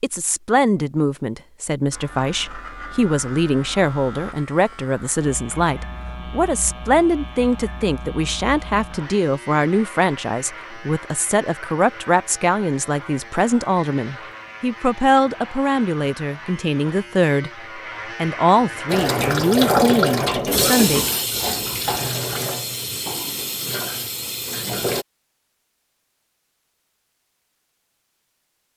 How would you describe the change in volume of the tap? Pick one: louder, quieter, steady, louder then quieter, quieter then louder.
quieter.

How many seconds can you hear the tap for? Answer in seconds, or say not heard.
6 s.